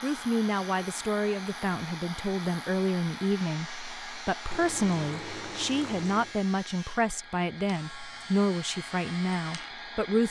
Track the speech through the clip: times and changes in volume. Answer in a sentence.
You can hear the speech from 0.0 to 10.2 s, at a steady volume.